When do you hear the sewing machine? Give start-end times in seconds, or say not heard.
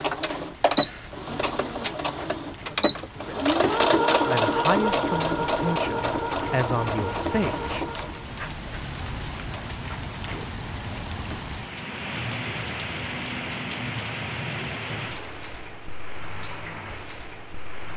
0.0-8.3.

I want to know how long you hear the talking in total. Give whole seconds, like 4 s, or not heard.
4 s.